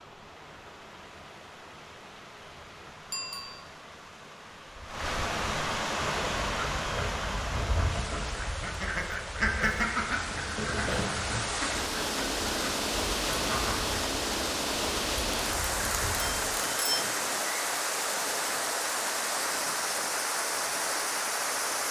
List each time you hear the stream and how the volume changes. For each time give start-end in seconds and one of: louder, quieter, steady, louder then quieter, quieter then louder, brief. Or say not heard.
0.0-21.8 louder.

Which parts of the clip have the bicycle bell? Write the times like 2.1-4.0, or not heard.
3.1-3.6, 15.3-17.1.